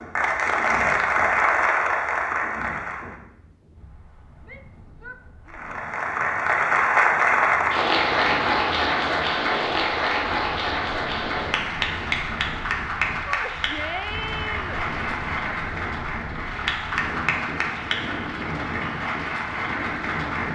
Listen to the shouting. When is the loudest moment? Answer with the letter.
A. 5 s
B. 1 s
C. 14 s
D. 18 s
C.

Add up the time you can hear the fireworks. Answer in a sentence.
The fireworks can't be heard in this clip.